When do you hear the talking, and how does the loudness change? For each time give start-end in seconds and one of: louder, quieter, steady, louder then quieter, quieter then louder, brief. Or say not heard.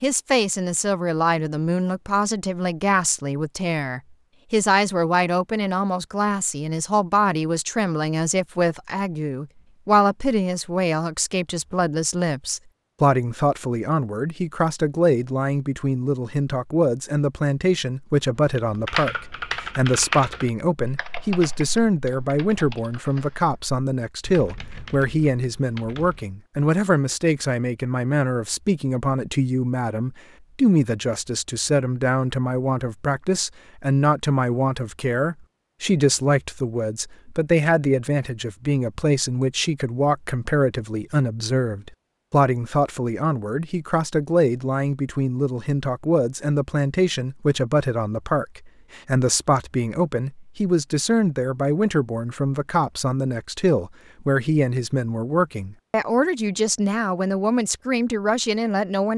0.0-59.1 steady.